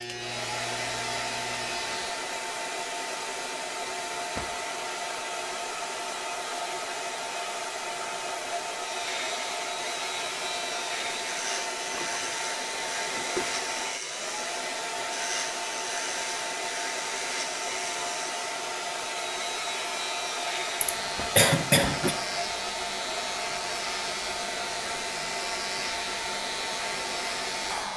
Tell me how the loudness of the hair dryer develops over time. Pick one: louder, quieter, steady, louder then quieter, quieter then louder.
steady.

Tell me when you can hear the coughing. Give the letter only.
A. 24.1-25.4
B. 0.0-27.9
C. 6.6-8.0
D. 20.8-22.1
D.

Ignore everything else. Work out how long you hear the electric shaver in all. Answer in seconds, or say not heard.
21 s.